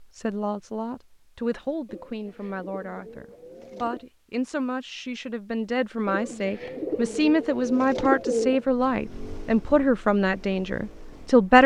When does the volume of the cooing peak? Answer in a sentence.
The loudest moment of the cooing is at 8 seconds.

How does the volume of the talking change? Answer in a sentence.
The loudness of the talking goes up.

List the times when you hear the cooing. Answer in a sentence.
You can hear the cooing from 1.9 to 4.0 s and from 6.0 to 8.7 s.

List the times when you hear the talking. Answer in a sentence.
The talking can be heard from 0.0 to 11.6 s.